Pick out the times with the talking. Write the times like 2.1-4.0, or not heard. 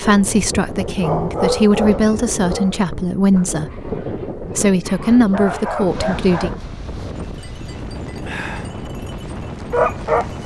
0.0-6.5.